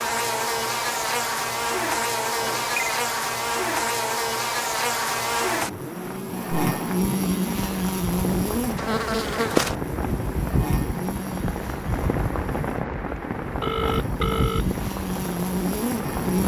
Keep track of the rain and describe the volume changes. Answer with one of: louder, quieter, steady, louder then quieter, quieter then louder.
louder.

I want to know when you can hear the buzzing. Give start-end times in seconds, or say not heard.
0.0-16.4.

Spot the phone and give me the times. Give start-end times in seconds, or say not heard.
2.4-2.9, 13.6-14.7.